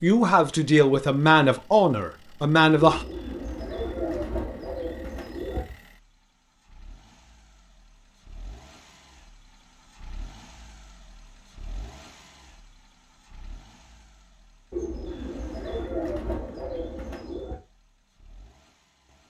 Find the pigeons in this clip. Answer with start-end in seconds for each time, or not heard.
2.8-5.8, 14.7-17.6.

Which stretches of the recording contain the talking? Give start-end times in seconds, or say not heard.
0.0-3.0.